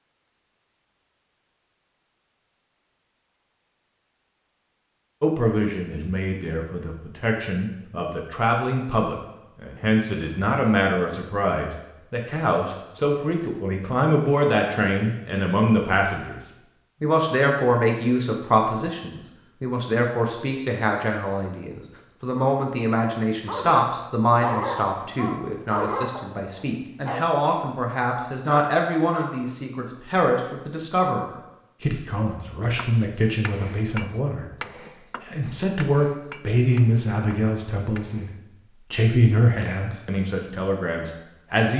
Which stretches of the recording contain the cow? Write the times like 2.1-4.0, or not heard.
not heard.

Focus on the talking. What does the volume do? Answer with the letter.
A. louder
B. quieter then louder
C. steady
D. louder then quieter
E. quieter
C.